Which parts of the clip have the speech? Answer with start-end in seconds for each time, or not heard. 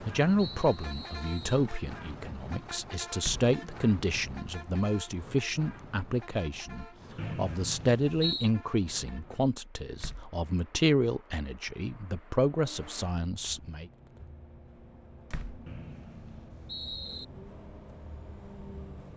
0.0-13.8.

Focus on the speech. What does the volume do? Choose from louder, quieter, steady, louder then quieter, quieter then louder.
steady.